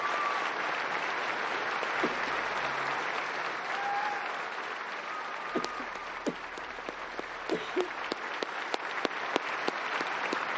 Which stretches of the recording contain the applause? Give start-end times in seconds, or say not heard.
0.0-10.5.